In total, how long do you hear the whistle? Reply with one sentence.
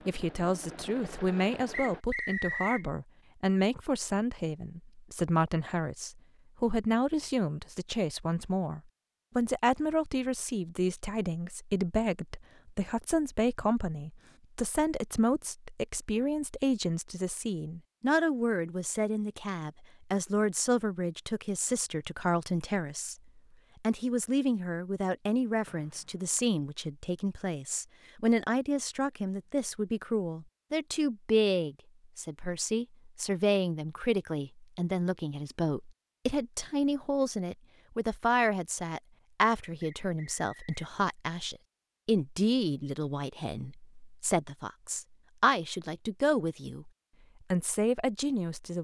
You can hear the whistle for 3 seconds altogether.